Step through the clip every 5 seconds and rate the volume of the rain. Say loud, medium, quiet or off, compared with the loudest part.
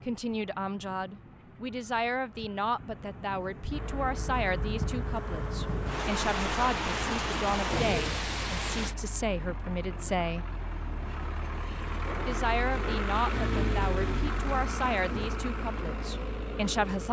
medium, loud, off, off.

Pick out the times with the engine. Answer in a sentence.
You can hear the engine from 3.6 to 17.0 s.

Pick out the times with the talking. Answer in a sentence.
The talking can be heard from 0.1 to 10.4 s and from 12.2 to 17.0 s.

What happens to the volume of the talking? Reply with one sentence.
The loudness of the talking stays about the same.